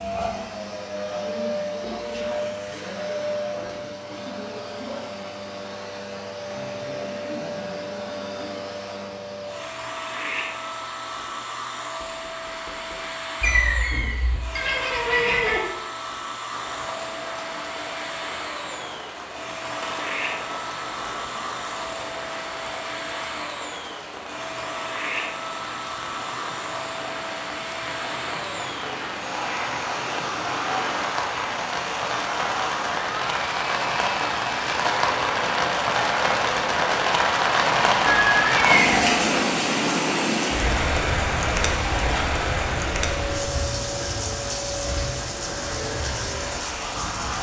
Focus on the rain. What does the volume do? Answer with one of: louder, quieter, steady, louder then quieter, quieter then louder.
louder then quieter.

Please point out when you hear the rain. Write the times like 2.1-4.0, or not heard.
16.5-47.3.